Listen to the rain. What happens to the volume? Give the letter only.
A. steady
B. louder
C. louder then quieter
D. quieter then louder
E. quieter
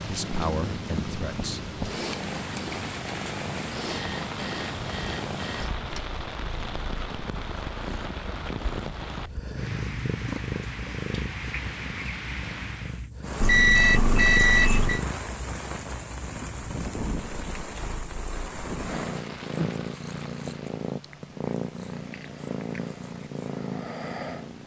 A.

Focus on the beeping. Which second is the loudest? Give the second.
14 s.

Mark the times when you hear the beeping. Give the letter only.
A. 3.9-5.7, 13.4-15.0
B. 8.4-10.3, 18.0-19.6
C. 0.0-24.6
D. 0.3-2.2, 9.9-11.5
A.